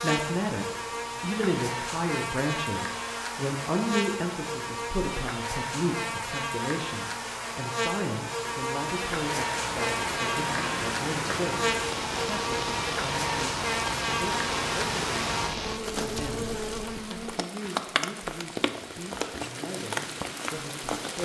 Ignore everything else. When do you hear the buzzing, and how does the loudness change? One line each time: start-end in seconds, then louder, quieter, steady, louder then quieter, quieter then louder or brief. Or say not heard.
0.0-17.4 steady.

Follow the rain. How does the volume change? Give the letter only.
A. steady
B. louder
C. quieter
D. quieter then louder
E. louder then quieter
A.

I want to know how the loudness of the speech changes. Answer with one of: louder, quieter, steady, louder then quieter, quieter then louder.
quieter.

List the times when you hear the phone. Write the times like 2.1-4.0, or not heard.
not heard.